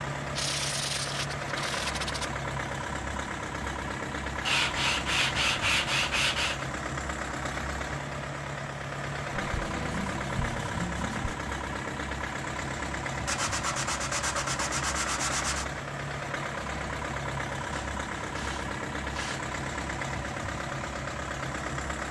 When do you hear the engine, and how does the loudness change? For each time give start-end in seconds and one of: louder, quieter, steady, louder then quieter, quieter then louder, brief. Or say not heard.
0.0-22.0 steady.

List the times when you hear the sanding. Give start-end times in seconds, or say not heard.
0.3-2.3, 4.5-6.7, 9.3-11.3, 13.2-15.7, 17.7-19.6.